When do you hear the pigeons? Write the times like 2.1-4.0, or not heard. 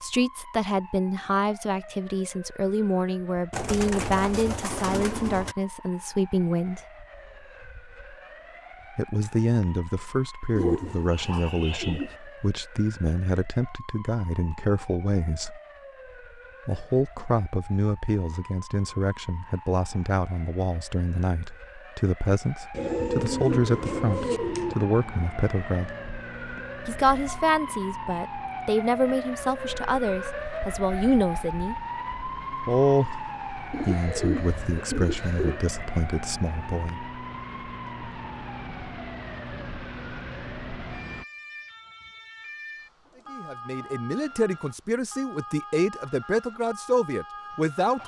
3.5-5.5, 10.6-12.2, 22.7-24.8, 33.7-35.6, 43.0-44.5.